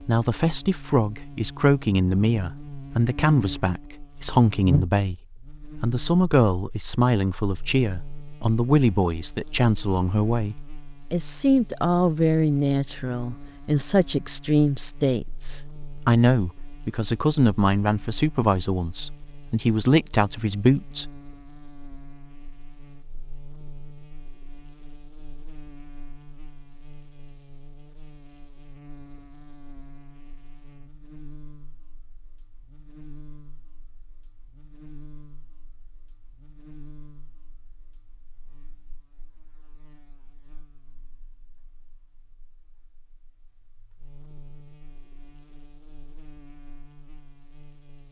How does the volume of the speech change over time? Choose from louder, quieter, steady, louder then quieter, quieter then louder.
steady.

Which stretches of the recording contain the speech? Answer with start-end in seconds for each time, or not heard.
0.0-5.2, 5.8-21.1.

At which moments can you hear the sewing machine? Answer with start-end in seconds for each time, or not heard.
not heard.